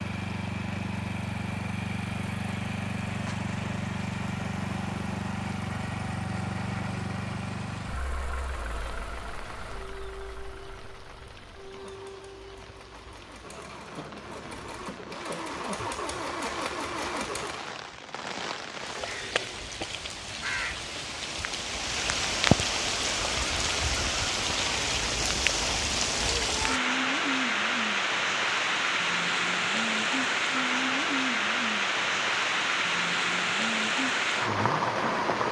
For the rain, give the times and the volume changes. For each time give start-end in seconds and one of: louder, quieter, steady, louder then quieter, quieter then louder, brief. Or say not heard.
0.0-35.4 louder.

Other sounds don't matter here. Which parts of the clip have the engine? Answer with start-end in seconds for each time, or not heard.
0.0-17.7.